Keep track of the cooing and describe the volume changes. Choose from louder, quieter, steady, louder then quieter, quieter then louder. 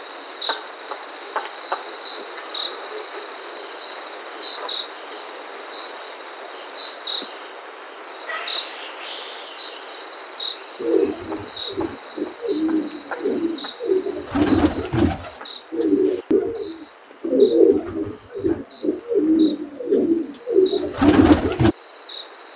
louder.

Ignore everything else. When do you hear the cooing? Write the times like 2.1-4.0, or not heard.
10.8-21.8.